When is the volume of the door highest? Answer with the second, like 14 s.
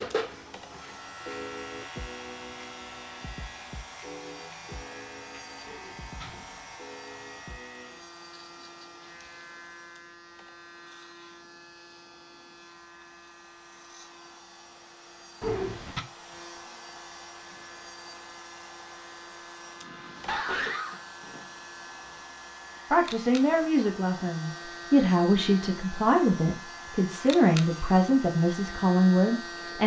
16 s.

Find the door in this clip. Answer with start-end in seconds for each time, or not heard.
5.7-6.7, 15.4-16.1.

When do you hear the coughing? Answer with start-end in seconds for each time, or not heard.
19.8-21.0.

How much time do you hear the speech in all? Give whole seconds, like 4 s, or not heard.
7 s.